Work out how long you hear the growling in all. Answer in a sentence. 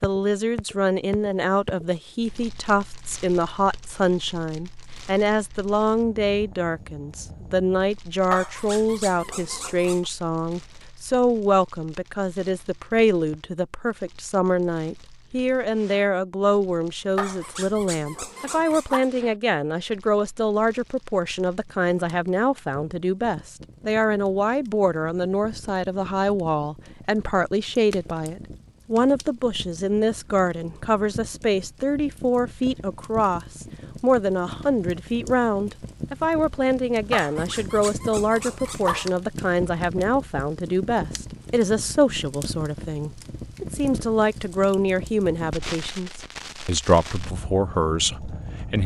You can hear the growling for 6 seconds altogether.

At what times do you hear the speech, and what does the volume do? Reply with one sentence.
The speech can be heard from 0.0 to 48.8 s, at a steady volume.